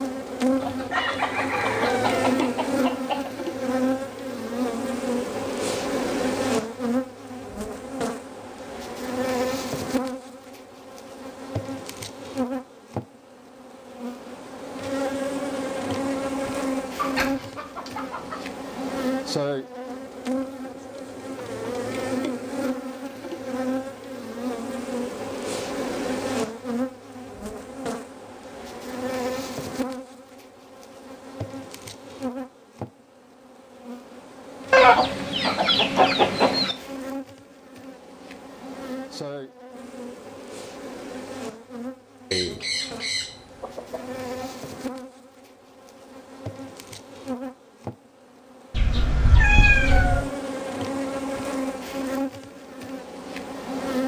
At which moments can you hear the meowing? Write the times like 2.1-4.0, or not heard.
48.7-50.2.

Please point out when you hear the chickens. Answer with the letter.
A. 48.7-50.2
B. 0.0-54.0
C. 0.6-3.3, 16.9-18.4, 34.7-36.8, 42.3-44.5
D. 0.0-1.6
C.